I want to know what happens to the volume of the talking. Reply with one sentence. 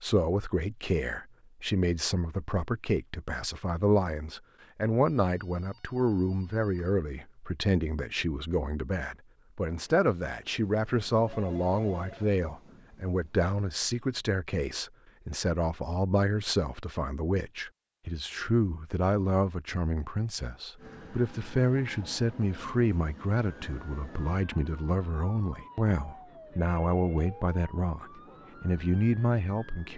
The volume of the talking stays about the same.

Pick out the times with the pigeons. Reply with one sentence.
You can't hear the pigeons here.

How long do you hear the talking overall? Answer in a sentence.
You can hear the talking for 30 seconds altogether.